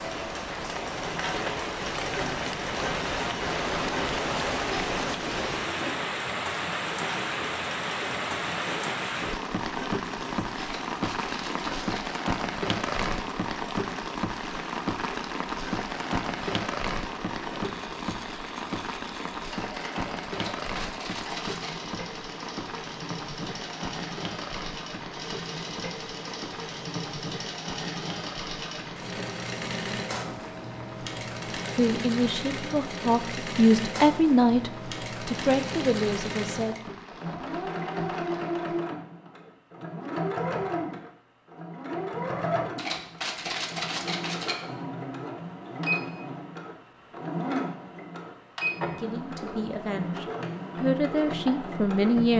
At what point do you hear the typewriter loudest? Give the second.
44 s.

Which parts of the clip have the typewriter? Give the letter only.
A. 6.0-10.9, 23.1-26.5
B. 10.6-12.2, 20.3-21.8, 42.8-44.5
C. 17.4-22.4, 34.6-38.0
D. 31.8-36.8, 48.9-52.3
B.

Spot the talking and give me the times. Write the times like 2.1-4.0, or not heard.
31.8-36.8, 48.9-52.3.